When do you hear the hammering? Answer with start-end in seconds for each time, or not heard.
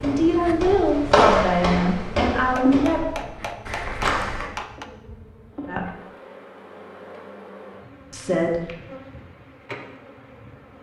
2.5-4.9.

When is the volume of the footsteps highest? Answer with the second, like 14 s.
1 s.